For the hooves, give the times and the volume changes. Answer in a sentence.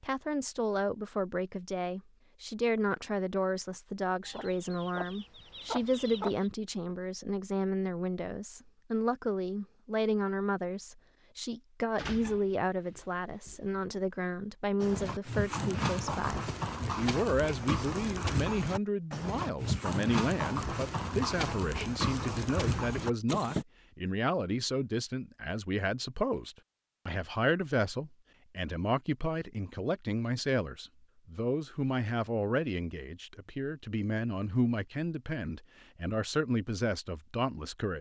The hooves can be heard from 14.8 to 23.6 s, at a steady volume.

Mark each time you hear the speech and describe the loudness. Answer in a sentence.
You can hear the speech from 0.0 to 37.9 s, at a steady volume.